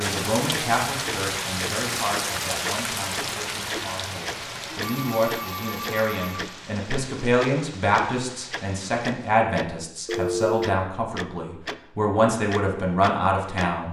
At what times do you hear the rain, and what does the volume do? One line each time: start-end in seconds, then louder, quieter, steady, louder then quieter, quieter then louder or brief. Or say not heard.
0.0-9.4 quieter.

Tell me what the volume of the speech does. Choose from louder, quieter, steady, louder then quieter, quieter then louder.
louder.